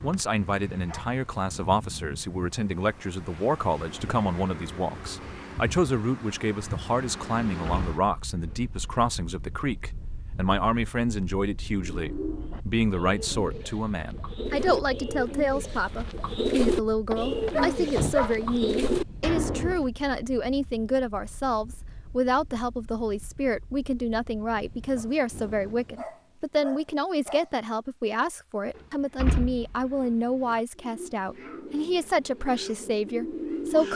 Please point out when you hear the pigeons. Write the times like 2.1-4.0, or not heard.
11.9-19.9, 30.8-33.9.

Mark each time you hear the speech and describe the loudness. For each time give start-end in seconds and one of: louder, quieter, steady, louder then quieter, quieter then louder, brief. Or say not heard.
0.0-33.9 steady.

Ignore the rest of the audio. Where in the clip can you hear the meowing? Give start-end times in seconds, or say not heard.
not heard.